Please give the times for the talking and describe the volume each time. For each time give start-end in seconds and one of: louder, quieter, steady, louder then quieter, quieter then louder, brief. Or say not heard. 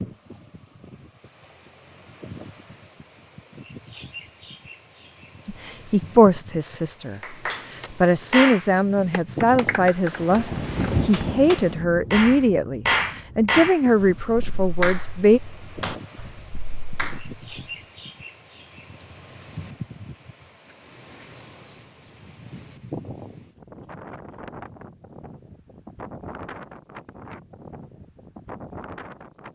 5.5-15.4 steady.